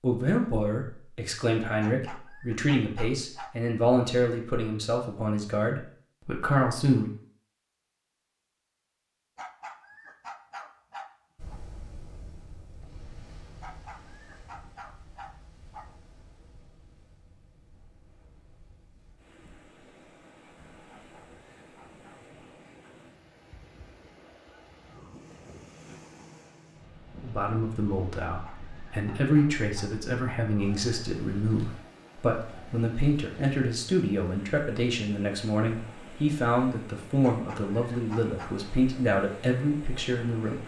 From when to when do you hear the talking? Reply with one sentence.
You can hear the talking from 0.0 to 7.1 s and from 27.2 to 40.6 s.